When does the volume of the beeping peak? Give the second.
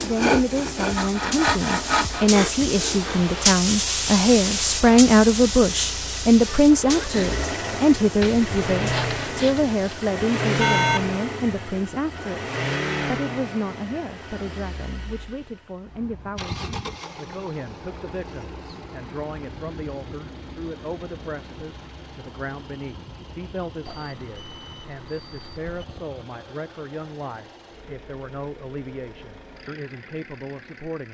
11 s.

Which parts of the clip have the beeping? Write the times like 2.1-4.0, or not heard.
10.6-11.2, 23.9-25.9.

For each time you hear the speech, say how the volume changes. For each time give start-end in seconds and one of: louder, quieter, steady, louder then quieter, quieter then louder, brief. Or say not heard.
0.0-31.0 quieter.